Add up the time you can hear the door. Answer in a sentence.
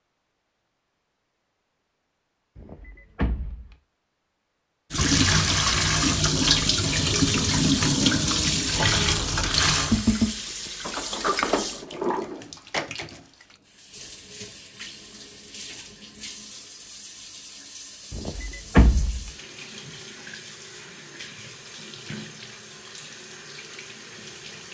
You can hear the door for 4 seconds altogether.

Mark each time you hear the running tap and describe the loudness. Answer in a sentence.
The running tap can be heard from 4.9 to 24.6 s, getting quieter.